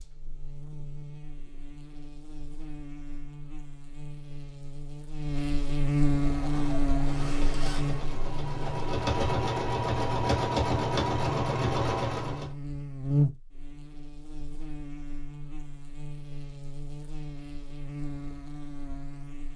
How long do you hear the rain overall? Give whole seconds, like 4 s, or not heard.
not heard.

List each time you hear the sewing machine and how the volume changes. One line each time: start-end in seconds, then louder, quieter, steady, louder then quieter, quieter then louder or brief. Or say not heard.
6.2-12.5 louder.